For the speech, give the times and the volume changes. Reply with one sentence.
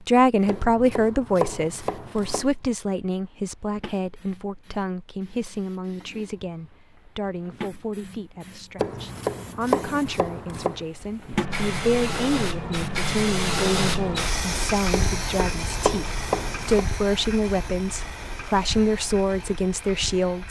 The speech can be heard from 0.1 to 20.4 s, getting quieter then louder.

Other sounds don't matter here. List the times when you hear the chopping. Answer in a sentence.
You can hear the chopping from 0.5 to 2.5 s, from 8.8 to 10.8 s and from 14.9 to 16.9 s.